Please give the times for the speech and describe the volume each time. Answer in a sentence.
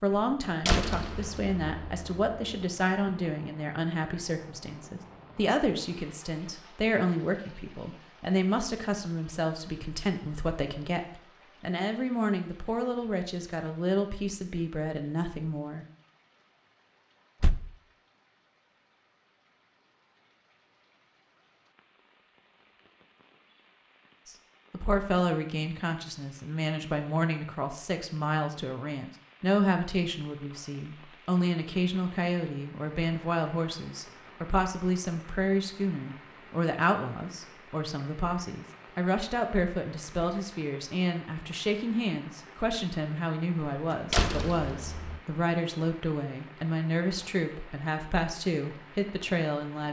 You can hear the speech from 0.0 to 15.8 s, at a steady volume; and from 24.2 to 49.8 s, at a steady volume.